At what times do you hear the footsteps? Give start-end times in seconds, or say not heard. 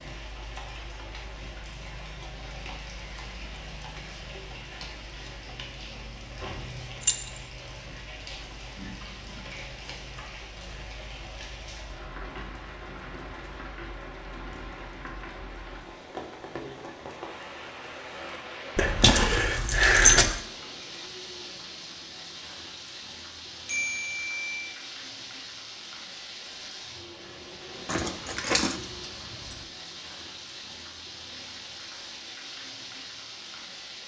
not heard.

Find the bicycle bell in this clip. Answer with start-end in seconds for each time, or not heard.
23.6-24.8.